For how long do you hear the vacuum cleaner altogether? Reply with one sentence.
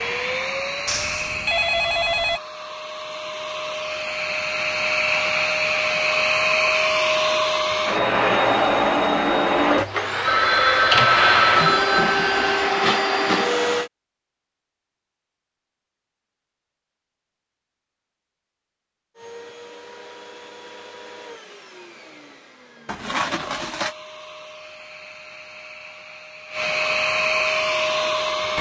The vacuum cleaner can be heard for 23 seconds in total.